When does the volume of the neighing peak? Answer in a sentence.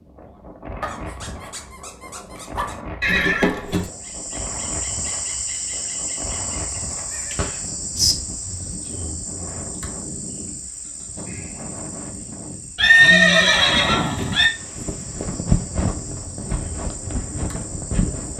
The loudest moment of the neighing is at 13 seconds.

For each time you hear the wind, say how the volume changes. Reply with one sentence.
You can hear the wind from 0.0 to 18.3 s, getting louder.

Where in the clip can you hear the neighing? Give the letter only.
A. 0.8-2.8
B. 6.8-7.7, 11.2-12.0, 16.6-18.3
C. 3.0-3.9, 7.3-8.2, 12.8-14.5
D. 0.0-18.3
C.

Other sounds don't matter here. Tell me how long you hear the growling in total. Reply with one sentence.
You can hear the growling for 2 seconds altogether.